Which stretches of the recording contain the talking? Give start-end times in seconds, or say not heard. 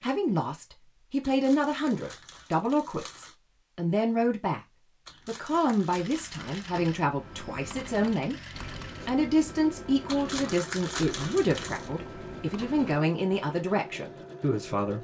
0.0-4.6, 5.2-8.3, 9.1-14.9.